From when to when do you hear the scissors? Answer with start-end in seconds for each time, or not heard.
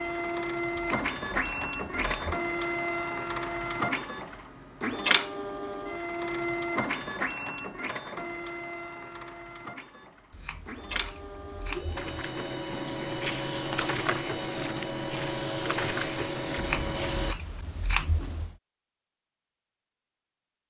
0.7-2.4, 10.3-12.0, 16.6-18.6.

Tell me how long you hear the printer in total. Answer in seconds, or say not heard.
17 s.